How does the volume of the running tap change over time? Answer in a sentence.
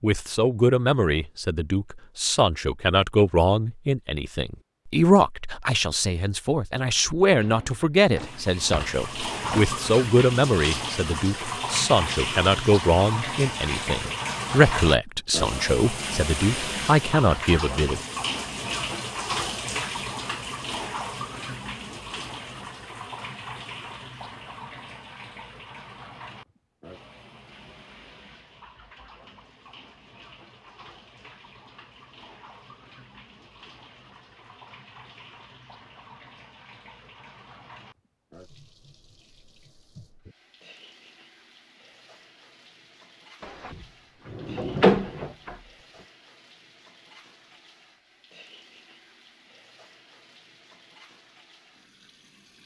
The loudness of the running tap goes down.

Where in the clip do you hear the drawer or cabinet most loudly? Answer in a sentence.
The volume of the drawer or cabinet peaks at 45 seconds.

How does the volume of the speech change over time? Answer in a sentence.
The volume of the speech stays about the same.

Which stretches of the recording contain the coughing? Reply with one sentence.
The coughing can't be heard in this clip.